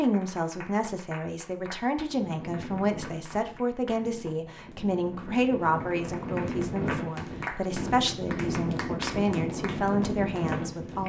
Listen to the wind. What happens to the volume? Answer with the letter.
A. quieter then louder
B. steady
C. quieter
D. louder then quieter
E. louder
E.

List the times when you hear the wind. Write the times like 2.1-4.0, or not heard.
2.0-11.0.